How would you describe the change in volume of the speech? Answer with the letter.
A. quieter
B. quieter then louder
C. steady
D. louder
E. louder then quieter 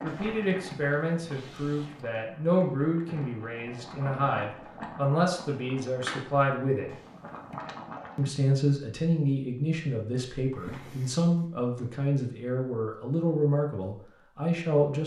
C.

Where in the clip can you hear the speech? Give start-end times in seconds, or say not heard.
0.0-7.0, 8.2-15.0.